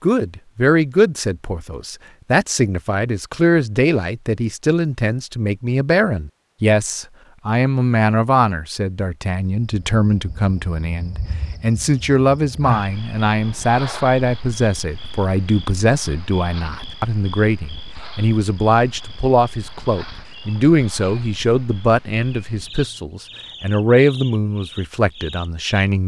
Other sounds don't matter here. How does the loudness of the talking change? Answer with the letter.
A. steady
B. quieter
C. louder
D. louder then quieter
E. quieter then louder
A.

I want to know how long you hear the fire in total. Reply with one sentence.
You can't hear the fire here.